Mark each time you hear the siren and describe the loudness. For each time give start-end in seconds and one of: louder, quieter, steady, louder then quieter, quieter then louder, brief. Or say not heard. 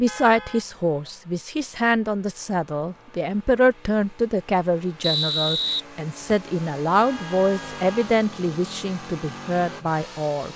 not heard.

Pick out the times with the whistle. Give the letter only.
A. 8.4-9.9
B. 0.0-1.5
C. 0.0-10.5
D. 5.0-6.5
D.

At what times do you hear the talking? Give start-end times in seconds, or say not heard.
0.0-10.5.